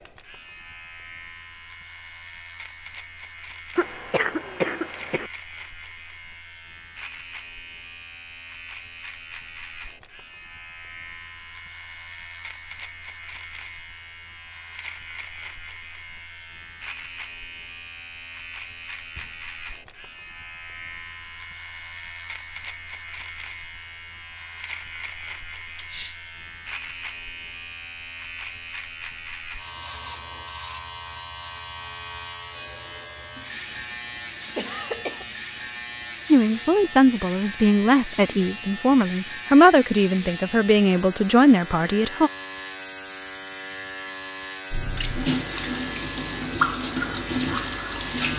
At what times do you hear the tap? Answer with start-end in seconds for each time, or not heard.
44.7-48.3.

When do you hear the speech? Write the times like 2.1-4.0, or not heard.
36.3-42.3.